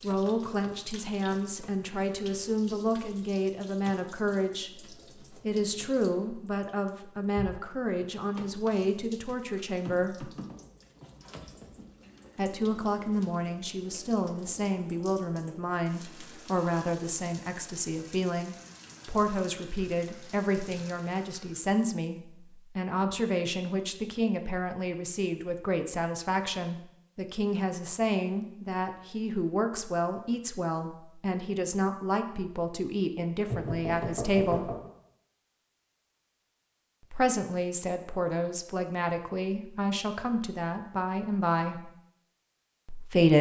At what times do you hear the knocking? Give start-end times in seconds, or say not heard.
33.5-34.9.